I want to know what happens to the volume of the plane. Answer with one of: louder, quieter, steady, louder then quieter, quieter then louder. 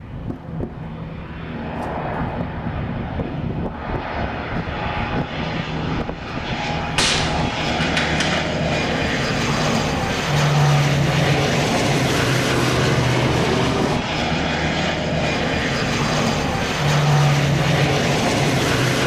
louder.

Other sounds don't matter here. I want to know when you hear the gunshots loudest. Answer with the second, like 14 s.
7 s.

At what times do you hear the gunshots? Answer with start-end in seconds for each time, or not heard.
7.0-8.4.